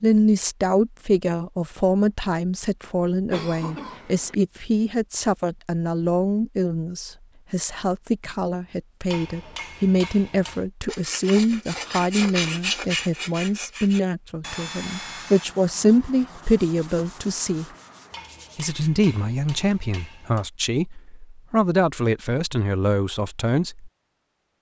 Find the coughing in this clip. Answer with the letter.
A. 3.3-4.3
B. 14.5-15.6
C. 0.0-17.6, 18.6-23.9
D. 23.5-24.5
A.